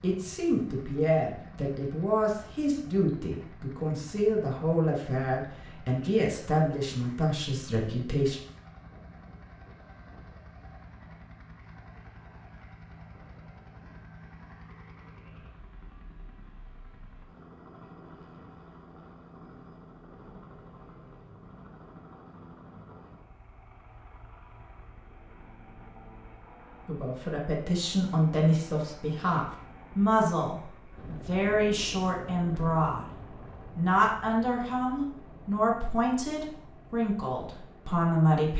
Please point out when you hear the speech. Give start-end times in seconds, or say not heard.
0.0-8.4, 26.9-33.1, 33.8-38.5.